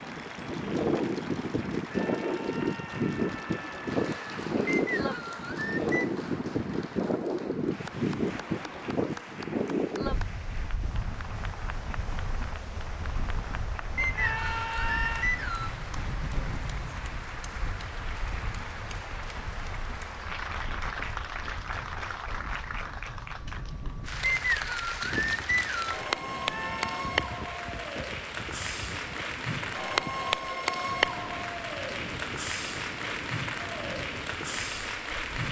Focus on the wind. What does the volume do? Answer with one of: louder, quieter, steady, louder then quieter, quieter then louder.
quieter.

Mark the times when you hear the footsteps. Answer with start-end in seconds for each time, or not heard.
not heard.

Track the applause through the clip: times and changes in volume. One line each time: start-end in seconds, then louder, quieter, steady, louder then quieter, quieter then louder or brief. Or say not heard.
0.0-35.4 louder.